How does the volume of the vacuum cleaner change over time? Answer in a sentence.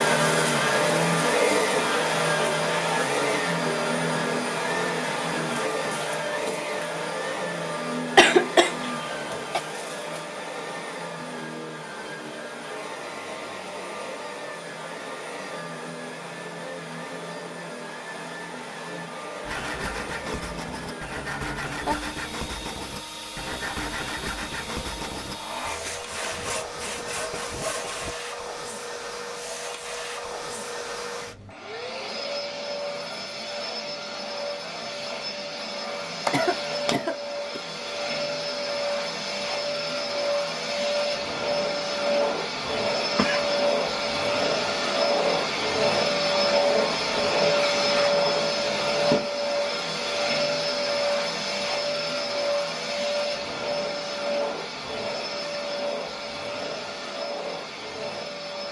The loudness of the vacuum cleaner goes down, then up.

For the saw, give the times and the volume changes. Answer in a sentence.
You can hear the saw from 19.4 to 28.1 s, at a steady volume.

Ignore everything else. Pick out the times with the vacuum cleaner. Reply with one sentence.
You can hear the vacuum cleaner from 0.0 to 58.6 s.